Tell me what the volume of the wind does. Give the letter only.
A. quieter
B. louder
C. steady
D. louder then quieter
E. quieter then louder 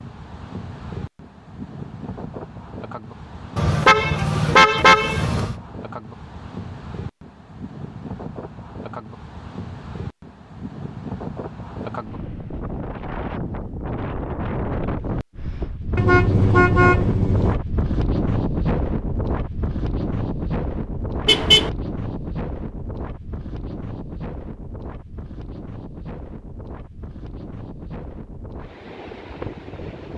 D.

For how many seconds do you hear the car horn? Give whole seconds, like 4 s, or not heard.
4 s.